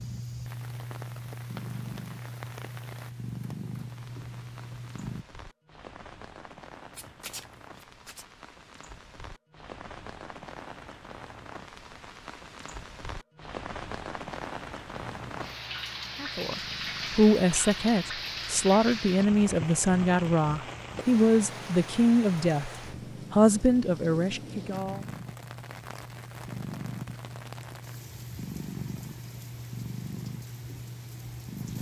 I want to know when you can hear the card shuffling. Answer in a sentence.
You can hear the card shuffling from 6.9 to 8.2 s.